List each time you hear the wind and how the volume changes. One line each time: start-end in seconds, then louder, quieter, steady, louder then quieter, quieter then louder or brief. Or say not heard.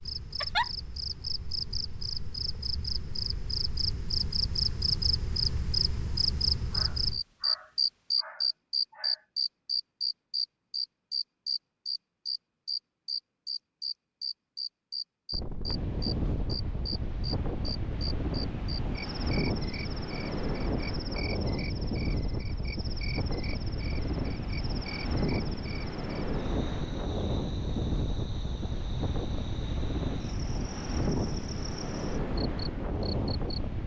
15.3-33.8 steady.